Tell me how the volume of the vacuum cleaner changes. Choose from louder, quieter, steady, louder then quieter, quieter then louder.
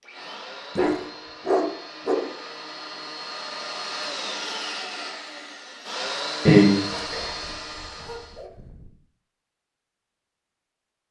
louder.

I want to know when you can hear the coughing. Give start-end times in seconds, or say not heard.
6.5-7.2.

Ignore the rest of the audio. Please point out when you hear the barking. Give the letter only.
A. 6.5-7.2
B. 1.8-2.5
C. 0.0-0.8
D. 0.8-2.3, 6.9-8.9
D.